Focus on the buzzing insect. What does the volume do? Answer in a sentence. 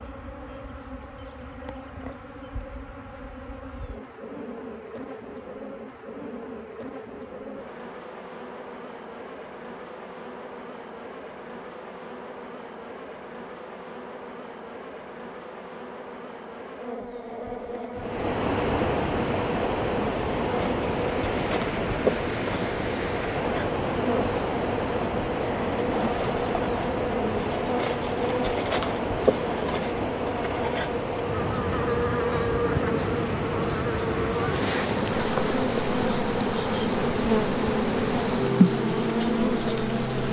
The volume of the buzzing insect goes up.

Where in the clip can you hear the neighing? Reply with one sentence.
The neighing can't be heard in this clip.